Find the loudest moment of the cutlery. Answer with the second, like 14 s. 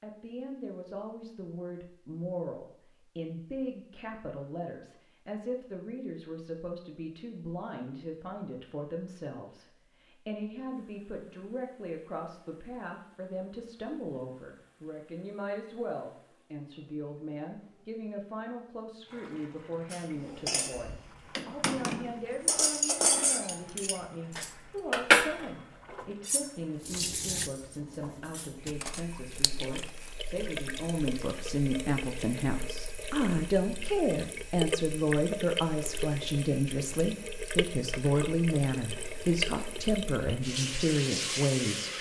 25 s.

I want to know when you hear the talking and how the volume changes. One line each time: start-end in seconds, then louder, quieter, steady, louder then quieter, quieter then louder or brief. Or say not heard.
0.0-41.9 louder.